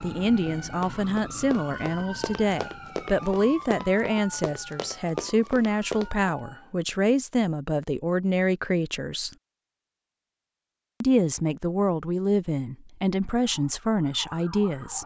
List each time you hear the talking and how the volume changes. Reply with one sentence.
The talking can be heard from 0.0 to 9.3 s, at a steady volume; and from 11.0 to 15.0 s, at a steady volume.